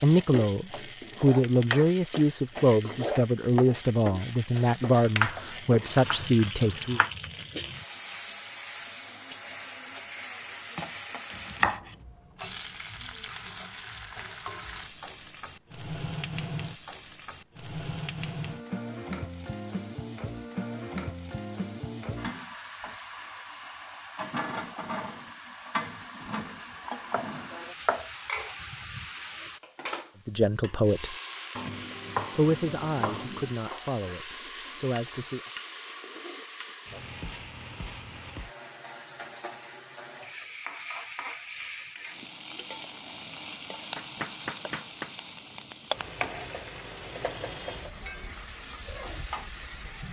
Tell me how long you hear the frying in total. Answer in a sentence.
You can hear the frying for 50 seconds altogether.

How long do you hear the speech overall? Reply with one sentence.
The speech can be heard for 11 seconds in total.